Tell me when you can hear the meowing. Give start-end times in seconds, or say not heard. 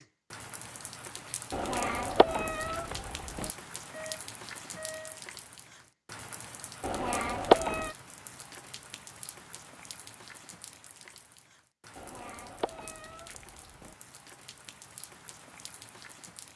1.5-3.5, 6.8-7.9, 11.9-13.9.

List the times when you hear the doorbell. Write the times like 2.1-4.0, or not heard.
3.9-5.2.